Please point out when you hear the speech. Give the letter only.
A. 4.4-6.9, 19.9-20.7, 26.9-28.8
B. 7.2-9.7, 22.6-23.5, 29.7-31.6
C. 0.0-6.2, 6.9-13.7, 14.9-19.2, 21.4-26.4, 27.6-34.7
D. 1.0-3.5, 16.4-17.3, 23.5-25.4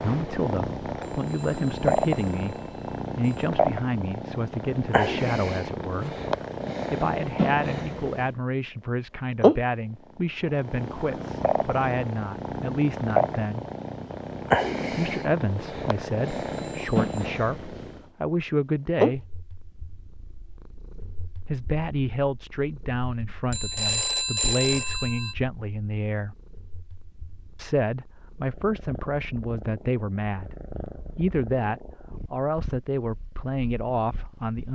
C.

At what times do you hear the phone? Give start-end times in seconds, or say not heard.
1.0-3.5, 16.4-17.3, 23.5-25.4.